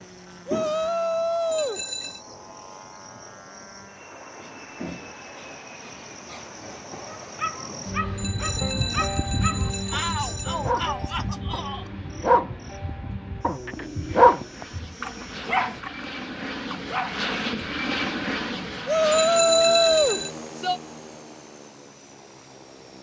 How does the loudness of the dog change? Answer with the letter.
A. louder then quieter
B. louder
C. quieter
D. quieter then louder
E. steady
A.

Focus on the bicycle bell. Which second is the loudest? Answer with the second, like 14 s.
20 s.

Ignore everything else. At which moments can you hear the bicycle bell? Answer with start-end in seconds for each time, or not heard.
1.5-2.2, 8.2-10.8, 19.1-20.3.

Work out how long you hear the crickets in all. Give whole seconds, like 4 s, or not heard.
16 s.